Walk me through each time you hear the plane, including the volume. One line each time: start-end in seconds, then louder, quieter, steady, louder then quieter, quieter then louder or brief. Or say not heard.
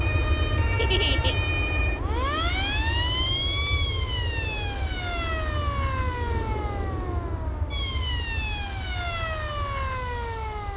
0.0-10.7 quieter.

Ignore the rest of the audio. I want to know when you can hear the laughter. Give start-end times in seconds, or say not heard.
0.8-1.4.